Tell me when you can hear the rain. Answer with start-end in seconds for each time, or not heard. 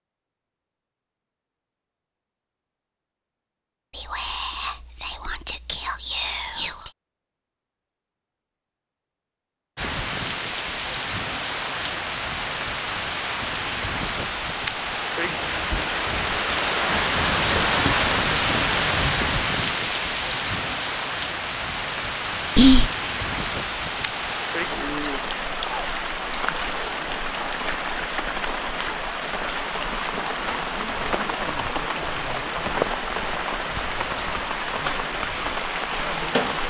9.8-36.6.